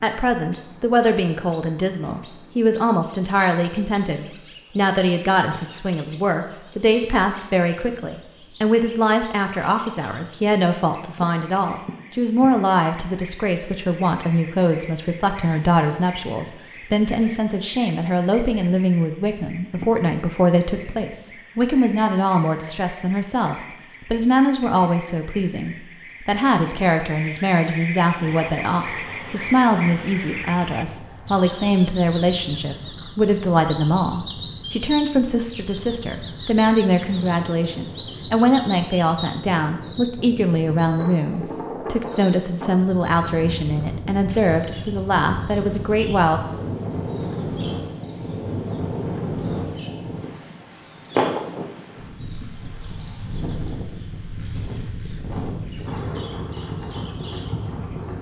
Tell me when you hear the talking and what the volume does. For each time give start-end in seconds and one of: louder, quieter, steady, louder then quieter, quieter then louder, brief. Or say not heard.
0.0-46.4 steady.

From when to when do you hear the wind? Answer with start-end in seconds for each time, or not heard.
28.1-58.1.